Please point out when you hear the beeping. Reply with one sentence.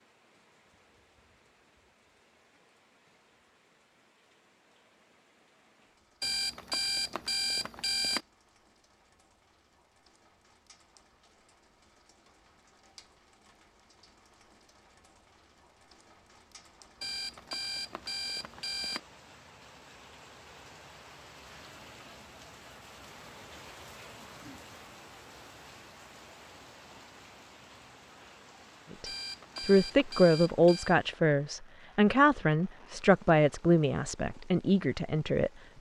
You can hear the beeping from 6.2 to 8.2 s, from 17.0 to 19.0 s and from 29.1 to 30.9 s.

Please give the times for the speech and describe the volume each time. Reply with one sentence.
The speech can be heard from 28.9 to 35.5 s, getting quieter.